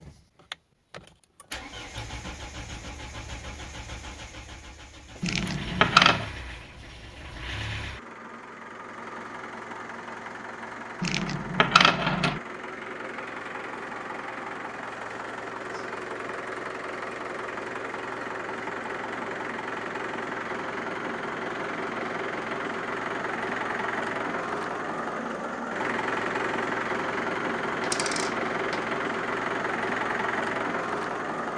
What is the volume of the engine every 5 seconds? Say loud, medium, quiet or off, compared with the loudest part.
quiet, medium, medium, medium, loud, loud, loud.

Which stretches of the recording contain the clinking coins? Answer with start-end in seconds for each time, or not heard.
5.2-6.3, 11.0-12.4, 27.8-28.8.